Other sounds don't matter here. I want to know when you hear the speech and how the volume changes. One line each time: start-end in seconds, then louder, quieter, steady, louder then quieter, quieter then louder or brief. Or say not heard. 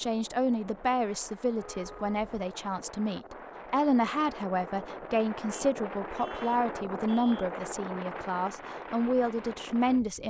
0.0-10.2 steady.